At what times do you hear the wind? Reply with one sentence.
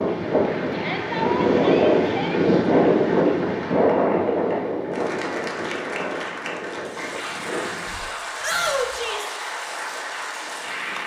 You can hear the wind from 0.0 to 8.0 s.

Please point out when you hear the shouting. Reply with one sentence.
You can hear the shouting from 0.7 to 2.4 s and from 8.4 to 9.3 s.